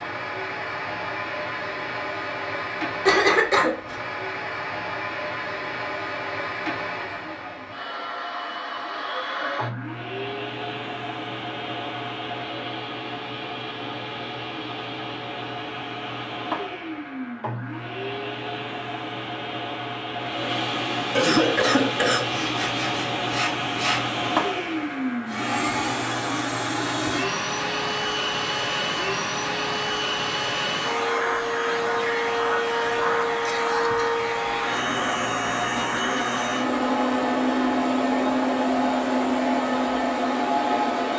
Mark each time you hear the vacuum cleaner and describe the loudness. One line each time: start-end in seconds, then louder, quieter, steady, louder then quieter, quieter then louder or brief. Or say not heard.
0.0-41.1 louder.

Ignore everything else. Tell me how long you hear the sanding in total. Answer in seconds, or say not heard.
2 s.